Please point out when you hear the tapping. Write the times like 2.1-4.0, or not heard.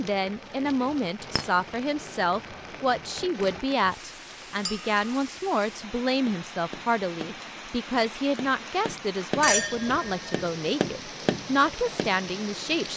6.2-12.1.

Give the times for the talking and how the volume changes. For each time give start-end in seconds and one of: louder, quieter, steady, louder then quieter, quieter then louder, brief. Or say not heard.
0.0-12.9 steady.